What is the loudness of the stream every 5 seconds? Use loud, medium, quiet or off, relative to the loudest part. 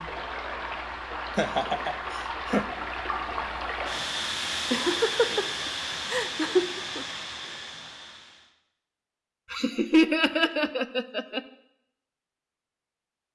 loud, loud, off.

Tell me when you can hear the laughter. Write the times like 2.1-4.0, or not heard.
1.4-2.6, 4.7-7.0, 9.5-11.4.